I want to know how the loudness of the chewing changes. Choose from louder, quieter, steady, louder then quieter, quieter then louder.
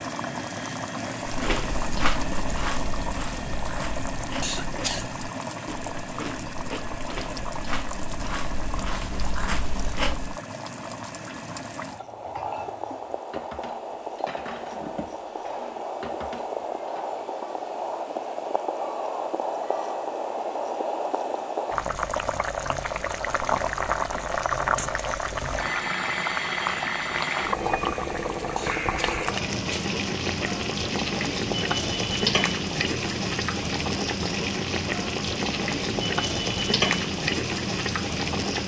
quieter then louder.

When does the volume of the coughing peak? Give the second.
5 s.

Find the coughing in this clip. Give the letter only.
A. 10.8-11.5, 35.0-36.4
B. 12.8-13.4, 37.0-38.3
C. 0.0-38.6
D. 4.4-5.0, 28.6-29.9
D.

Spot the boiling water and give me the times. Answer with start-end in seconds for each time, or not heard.
0.0-38.6.